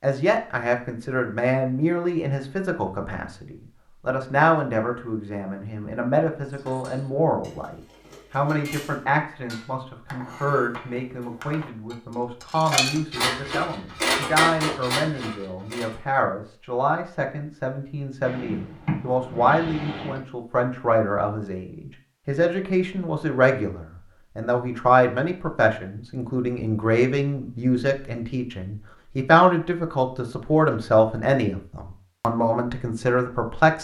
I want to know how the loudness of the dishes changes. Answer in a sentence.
The volume of the dishes goes up.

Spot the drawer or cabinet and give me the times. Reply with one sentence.
The drawer or cabinet can be heard from 18.2 to 20.2 s.